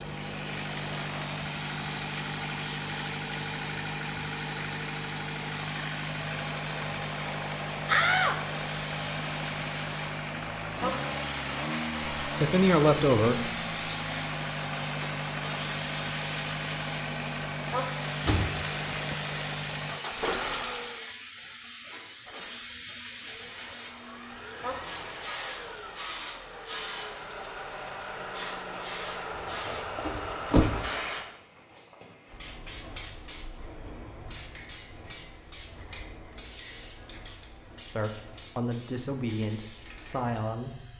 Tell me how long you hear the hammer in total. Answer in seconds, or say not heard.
not heard.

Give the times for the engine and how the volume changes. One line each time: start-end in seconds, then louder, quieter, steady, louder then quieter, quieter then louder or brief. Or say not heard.
0.0-21.1 steady
23.1-31.4 louder.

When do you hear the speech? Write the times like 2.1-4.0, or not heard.
12.2-13.9, 37.9-40.9.